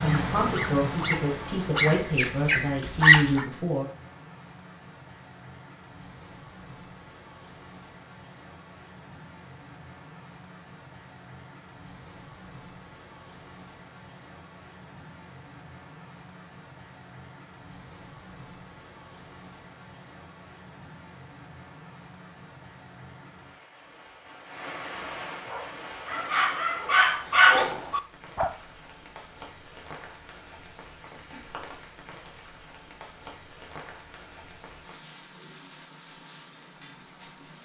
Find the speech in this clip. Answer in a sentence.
The speech can be heard from 0.0 to 3.9 s.